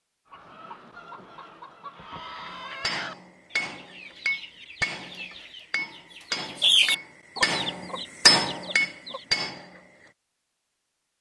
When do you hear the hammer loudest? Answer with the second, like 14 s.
8 s.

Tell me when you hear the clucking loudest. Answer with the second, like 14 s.
7 s.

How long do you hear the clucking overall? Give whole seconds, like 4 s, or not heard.
9 s.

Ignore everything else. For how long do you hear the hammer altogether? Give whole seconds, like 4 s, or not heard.
7 s.